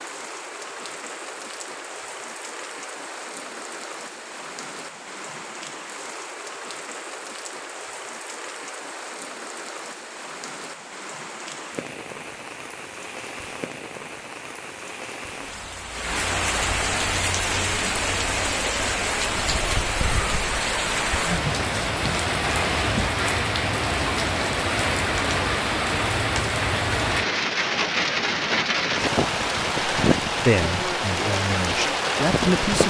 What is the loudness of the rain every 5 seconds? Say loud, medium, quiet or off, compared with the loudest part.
quiet, quiet, quiet, loud, loud, loud, loud.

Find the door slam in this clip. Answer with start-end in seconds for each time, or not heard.
not heard.